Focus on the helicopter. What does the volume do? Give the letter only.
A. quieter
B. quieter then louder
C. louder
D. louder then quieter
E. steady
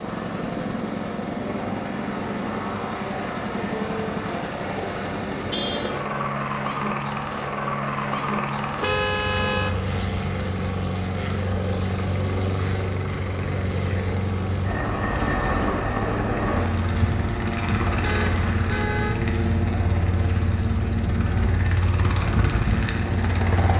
E.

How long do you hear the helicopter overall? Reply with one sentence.
The helicopter can be heard for 24 seconds in total.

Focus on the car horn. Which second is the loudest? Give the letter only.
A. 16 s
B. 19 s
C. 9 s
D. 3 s
C.